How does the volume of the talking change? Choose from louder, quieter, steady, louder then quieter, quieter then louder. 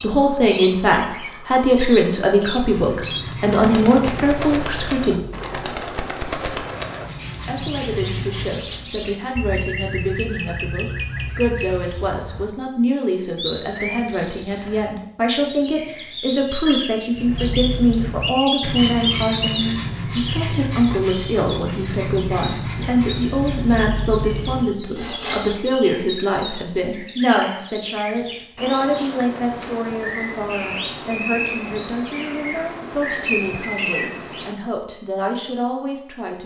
quieter.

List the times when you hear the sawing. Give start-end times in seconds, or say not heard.
2.5-8.7, 17.1-25.6.